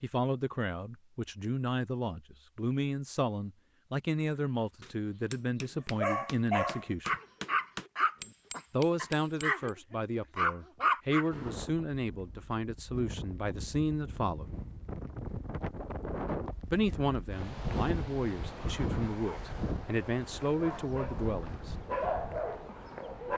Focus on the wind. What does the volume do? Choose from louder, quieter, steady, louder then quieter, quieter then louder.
louder then quieter.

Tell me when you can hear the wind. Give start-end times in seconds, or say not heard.
11.3-23.3.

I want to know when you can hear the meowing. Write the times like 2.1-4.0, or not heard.
not heard.